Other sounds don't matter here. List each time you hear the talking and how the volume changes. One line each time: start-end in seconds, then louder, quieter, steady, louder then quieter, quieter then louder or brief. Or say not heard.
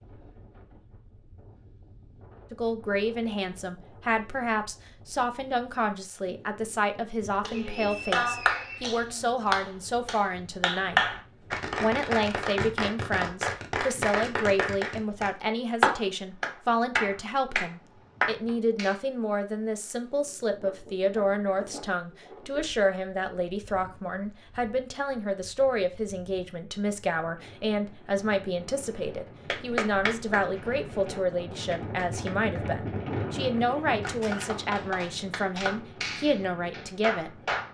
2.5-11.0 steady
11.8-37.4 steady.